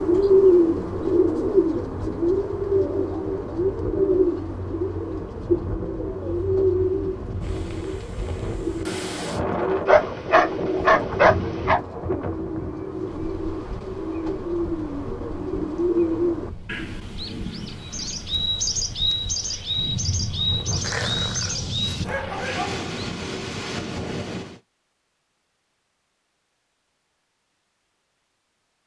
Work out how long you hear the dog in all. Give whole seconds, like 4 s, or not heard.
3 s.